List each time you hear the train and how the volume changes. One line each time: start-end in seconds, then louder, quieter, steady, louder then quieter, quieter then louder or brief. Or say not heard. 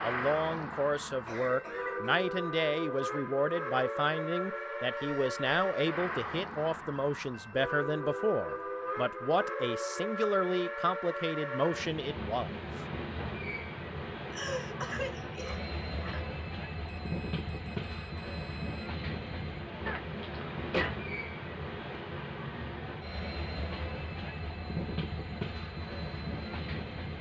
0.0-27.1 steady.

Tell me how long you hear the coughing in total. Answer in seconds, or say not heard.
4 s.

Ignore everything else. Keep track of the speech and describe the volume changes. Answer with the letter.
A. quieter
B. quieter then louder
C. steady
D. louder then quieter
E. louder
C.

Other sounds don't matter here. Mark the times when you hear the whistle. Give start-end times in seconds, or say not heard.
not heard.